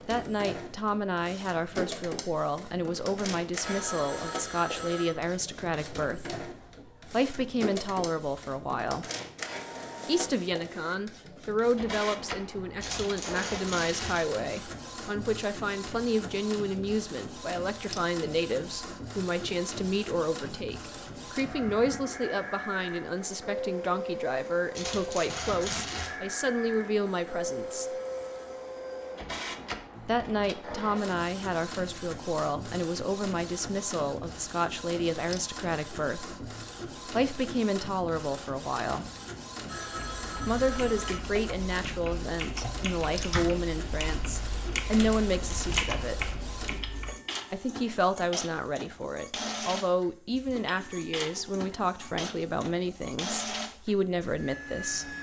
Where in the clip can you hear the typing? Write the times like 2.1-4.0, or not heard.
40.0-47.1.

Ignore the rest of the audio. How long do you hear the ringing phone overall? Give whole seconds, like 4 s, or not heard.
4 s.